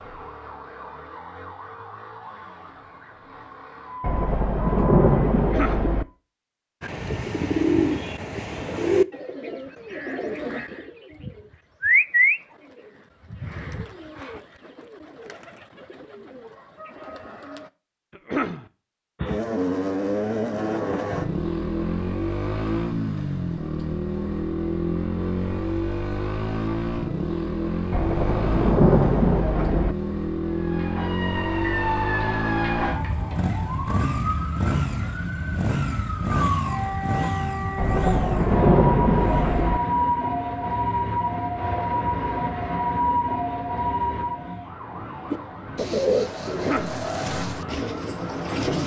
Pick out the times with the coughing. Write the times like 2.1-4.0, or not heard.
5.3-5.9, 18.1-18.6, 46.5-47.0.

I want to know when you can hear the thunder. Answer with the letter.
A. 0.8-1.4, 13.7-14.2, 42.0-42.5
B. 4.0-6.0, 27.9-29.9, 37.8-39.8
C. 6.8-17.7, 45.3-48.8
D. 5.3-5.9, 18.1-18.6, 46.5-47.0
B.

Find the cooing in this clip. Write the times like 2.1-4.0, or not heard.
6.8-17.7, 45.3-48.8.